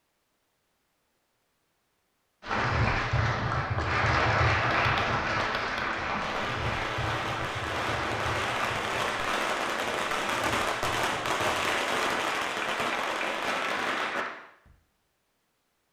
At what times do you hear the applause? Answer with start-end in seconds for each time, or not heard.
2.4-14.3.